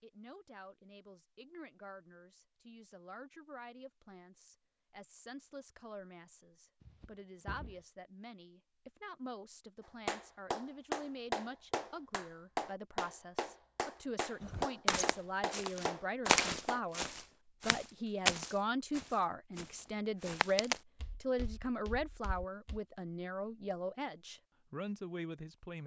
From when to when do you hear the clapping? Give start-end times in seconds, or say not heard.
10.1-16.8.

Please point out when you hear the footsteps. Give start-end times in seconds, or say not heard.
14.4-22.8.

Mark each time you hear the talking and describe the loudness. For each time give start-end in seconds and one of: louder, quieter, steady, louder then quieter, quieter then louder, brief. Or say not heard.
0.0-25.8 louder.